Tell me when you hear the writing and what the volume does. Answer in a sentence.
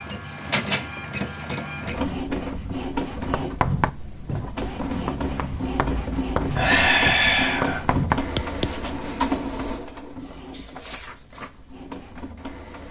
You can hear the writing from 3.3 to 9.1 s, getting quieter then louder.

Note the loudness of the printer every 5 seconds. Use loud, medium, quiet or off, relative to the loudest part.
loud, loud, medium.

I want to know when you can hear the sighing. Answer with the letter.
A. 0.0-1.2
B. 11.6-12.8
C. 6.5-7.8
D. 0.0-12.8
C.